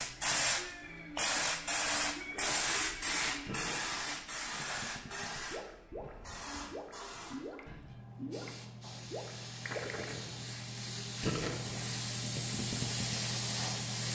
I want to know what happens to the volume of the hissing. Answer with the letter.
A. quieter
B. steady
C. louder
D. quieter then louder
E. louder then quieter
D.